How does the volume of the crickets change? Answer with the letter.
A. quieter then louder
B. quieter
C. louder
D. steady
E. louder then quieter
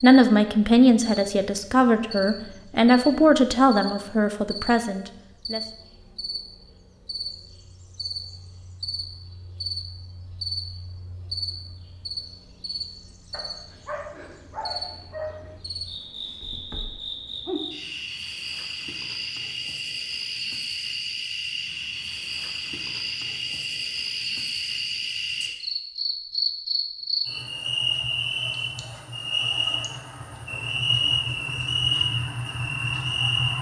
C.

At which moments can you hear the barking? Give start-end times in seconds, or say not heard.
13.3-15.6.